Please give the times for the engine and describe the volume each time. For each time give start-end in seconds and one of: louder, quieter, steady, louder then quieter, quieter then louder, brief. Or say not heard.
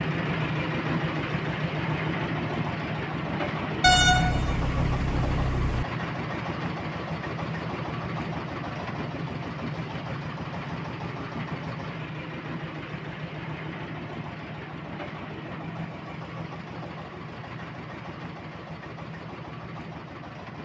0.0-20.6 quieter.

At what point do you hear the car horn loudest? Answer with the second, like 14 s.
4 s.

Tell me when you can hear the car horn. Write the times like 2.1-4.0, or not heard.
3.8-5.8.